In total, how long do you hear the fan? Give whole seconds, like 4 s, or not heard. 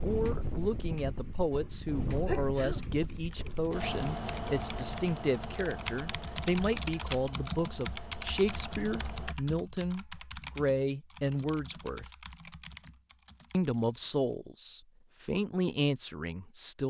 9 s.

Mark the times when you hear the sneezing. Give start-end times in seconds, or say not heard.
2.2-2.9.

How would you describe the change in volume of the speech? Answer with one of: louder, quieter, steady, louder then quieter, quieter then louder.
steady.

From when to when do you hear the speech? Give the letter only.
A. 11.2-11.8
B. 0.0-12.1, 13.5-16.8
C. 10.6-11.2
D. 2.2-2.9
B.